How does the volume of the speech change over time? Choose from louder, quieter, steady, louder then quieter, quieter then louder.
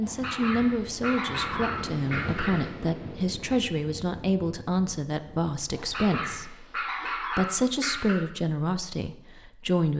steady.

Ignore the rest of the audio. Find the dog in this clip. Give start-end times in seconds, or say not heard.
0.0-2.7, 5.7-8.2.